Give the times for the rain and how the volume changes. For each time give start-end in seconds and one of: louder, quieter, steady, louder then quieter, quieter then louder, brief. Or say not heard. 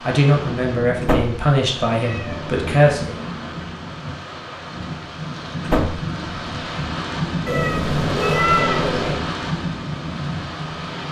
0.0-11.0 louder.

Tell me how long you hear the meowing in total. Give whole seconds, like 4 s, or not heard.
3 s.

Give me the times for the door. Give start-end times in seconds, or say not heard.
1.0-1.4, 5.7-6.1.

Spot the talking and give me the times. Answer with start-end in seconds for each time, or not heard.
0.0-3.2.